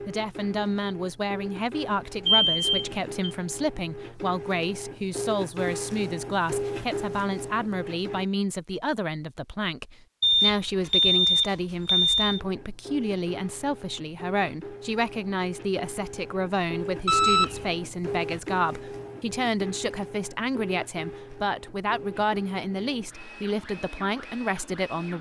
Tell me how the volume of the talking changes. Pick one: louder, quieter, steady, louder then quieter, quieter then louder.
steady.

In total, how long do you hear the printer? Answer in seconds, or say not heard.
21 s.